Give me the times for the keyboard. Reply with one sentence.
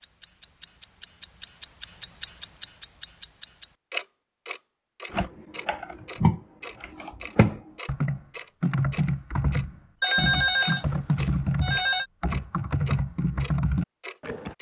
The keyboard can be heard from 5.1 to 14.5 s.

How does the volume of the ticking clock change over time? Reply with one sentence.
The volume of the ticking clock goes down.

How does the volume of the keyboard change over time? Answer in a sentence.
The volume of the keyboard stays about the same.